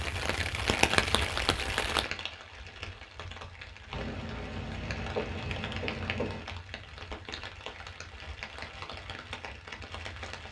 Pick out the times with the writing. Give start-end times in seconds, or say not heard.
3.9-6.5.